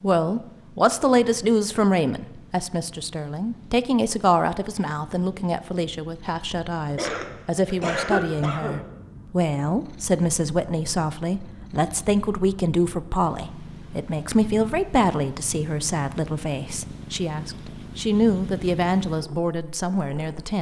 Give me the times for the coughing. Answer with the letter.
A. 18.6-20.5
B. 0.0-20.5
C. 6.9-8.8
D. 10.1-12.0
C.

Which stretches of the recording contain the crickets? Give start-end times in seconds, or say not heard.
not heard.